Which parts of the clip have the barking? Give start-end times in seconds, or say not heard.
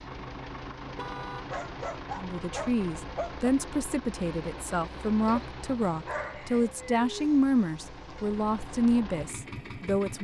1.5-3.5, 5.2-7.3.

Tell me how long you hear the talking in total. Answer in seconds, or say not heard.
8 s.